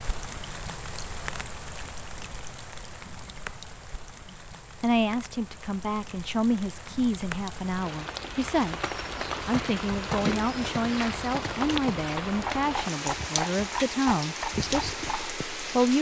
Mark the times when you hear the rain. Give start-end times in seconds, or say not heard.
0.0-15.9.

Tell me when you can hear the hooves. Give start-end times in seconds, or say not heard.
9.3-15.4.